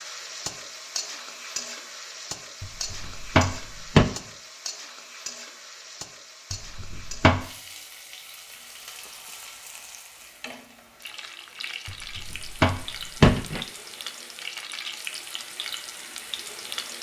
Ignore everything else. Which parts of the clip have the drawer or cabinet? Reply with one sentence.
You can hear the drawer or cabinet from 2.6 to 4.1 s, from 6.5 to 7.4 s and from 11.8 to 13.7 s.